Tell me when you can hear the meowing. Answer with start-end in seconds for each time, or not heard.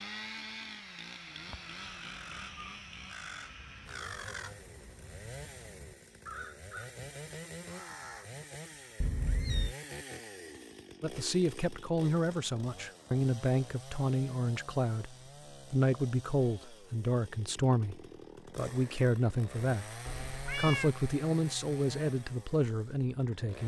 1.2-2.8, 9.0-9.8, 20.1-20.9.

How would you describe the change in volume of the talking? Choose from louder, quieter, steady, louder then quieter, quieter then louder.
steady.